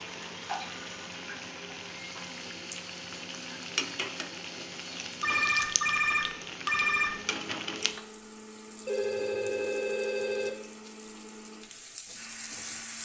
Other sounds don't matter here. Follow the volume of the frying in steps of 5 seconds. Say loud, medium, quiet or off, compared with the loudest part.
loud, loud, medium.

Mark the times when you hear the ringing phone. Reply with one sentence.
You can hear the ringing phone from 0.6 to 1.1 s, from 5.2 to 7.2 s and from 8.8 to 10.5 s.